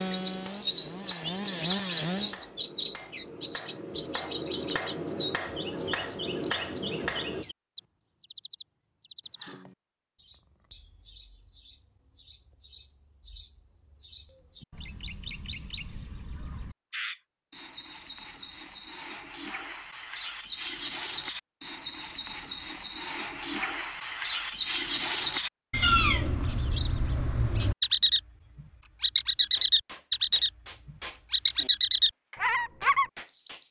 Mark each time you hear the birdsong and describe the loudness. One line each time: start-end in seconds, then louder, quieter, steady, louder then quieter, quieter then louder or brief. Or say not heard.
0.1-33.6 quieter then louder.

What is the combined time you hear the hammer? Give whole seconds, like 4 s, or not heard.
12 s.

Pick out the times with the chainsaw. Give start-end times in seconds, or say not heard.
0.0-2.4.